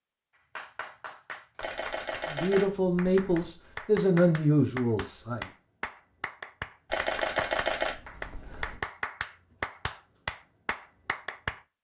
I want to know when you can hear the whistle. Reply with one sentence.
The whistle can't be heard in this clip.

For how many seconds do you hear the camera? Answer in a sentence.
You can hear the camera for 4 seconds altogether.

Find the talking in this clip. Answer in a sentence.
You can hear the talking from 2.3 to 5.5 s.